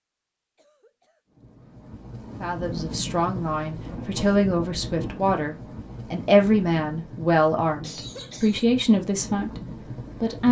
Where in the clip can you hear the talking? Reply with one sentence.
You can hear the talking from 2.4 to 10.4 s.